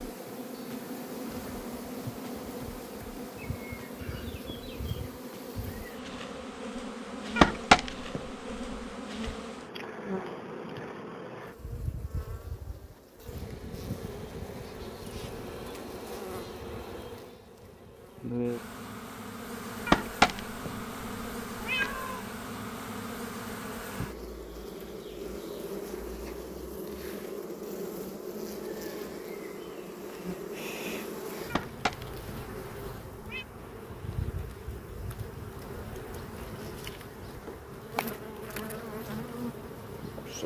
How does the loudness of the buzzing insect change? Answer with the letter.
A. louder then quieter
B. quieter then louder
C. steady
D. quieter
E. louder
C.